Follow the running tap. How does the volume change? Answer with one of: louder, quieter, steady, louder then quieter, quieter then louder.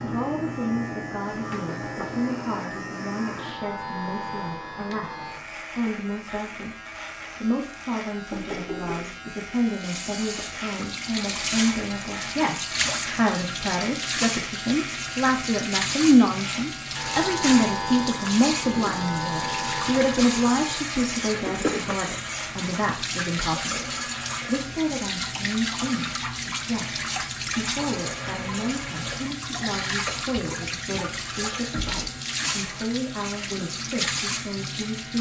steady.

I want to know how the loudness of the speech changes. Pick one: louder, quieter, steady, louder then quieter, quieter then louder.
louder then quieter.